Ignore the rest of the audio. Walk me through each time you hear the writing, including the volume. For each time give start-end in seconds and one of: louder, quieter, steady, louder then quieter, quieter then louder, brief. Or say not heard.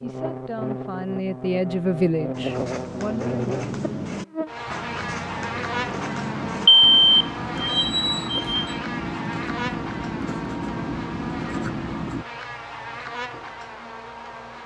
2.3-12.2 steady.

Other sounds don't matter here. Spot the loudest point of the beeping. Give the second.
7 s.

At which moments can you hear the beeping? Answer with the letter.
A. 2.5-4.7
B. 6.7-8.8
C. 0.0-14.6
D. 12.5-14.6
B.